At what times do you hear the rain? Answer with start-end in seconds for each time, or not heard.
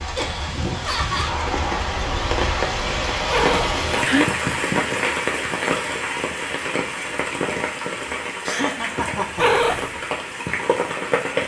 0.0-11.4.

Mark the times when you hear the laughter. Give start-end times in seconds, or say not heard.
0.1-1.4, 8.4-9.8.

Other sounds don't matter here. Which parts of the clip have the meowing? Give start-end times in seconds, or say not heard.
3.2-4.2, 9.3-9.9.